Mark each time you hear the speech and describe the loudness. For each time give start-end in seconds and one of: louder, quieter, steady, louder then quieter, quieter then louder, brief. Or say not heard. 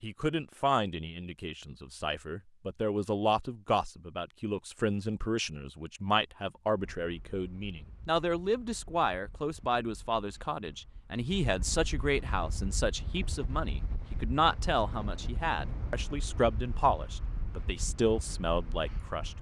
0.0-19.3 steady.